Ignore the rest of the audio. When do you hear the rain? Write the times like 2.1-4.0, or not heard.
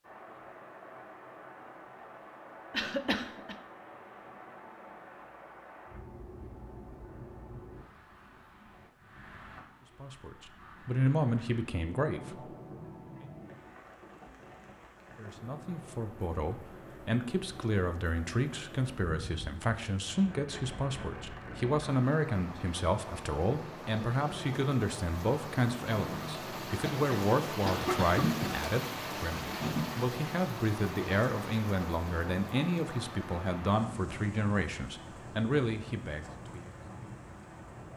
0.0-37.9.